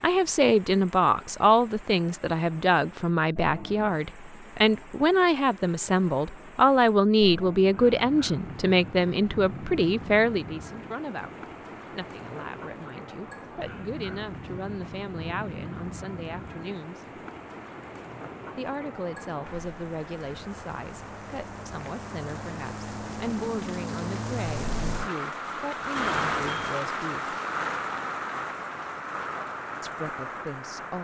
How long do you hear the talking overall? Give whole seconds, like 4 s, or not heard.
27 s.